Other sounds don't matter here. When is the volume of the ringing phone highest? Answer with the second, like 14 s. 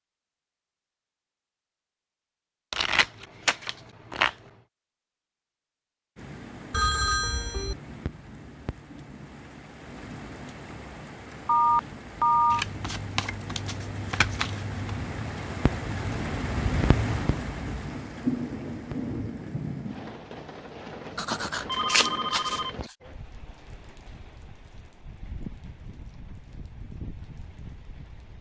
12 s.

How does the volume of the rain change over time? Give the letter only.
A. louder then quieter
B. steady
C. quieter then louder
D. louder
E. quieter
A.